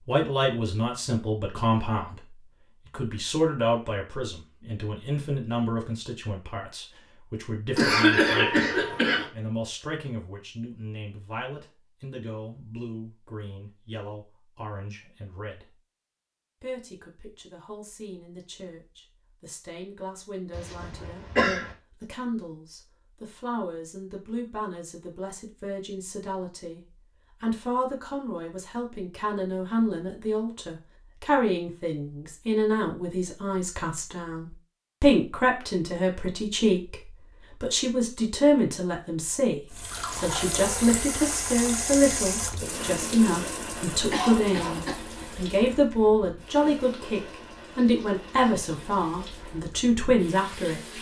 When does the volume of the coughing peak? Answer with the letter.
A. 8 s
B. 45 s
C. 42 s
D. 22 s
A.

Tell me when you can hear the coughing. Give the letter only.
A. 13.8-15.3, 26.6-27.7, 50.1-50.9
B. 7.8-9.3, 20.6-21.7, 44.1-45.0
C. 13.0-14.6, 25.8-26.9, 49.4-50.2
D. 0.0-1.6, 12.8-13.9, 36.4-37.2
B.